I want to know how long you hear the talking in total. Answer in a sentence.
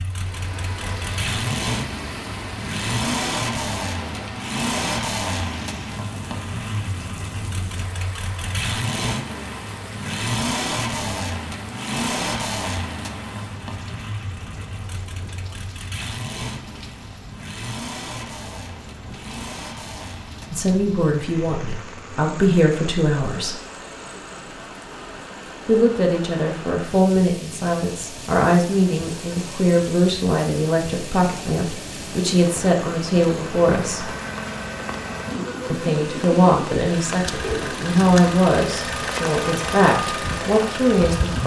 The talking can be heard for 17 seconds in total.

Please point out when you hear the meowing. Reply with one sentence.
You can't hear the meowing here.